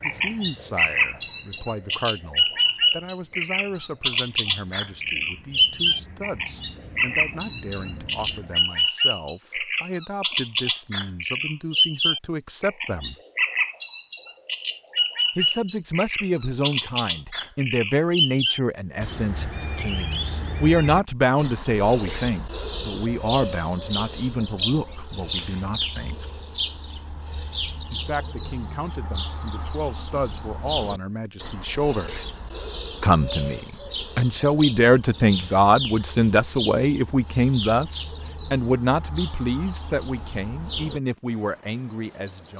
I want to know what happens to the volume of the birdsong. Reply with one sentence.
The loudness of the birdsong goes down.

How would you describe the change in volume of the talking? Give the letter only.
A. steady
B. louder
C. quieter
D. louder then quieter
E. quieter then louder
B.